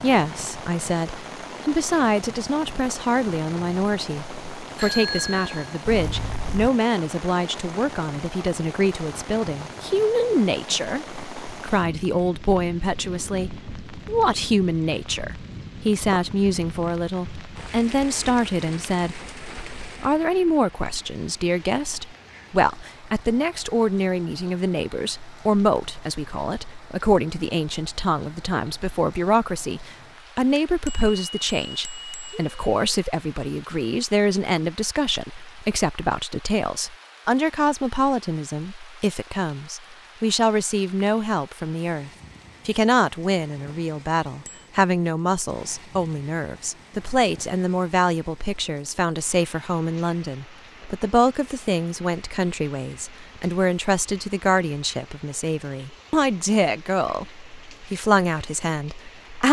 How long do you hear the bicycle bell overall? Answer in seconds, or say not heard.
4 s.